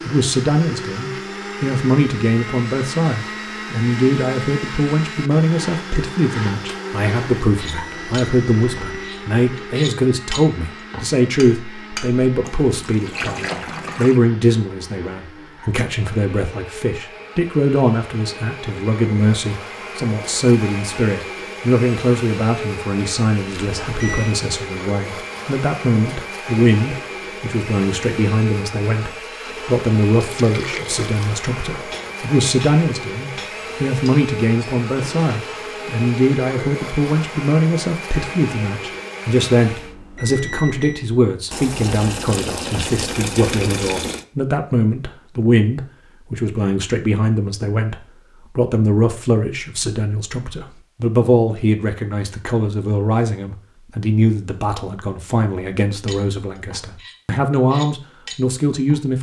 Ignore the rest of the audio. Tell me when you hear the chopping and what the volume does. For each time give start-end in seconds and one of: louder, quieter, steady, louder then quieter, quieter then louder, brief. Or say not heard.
not heard.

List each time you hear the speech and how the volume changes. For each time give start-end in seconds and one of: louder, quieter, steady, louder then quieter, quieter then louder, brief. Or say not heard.
0.1-59.1 steady.